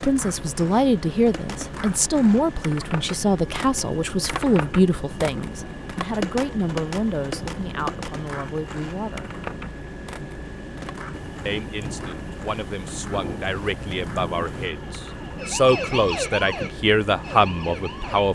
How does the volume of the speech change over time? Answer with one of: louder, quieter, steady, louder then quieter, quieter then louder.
quieter then louder.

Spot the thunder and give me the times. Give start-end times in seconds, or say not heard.
11.1-14.7.